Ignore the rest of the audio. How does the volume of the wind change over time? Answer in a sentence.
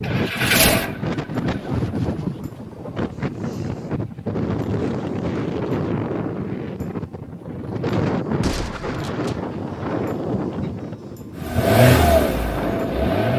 The volume of the wind stays about the same.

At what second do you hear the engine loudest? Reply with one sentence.
The loudest moment of the engine is at 12 seconds.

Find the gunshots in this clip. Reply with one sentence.
You can hear the gunshots from 8.4 to 9.3 s.